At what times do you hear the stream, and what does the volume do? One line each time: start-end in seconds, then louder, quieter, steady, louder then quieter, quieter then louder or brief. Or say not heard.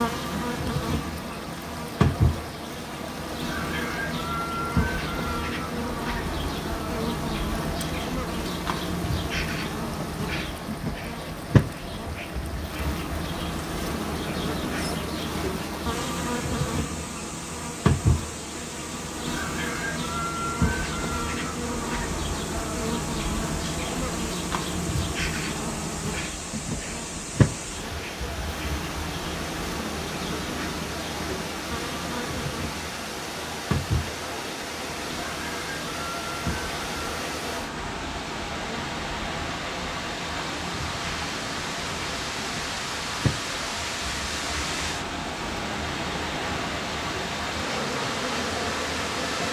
0.0-49.4 louder.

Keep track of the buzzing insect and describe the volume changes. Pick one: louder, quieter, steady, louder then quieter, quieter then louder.
quieter.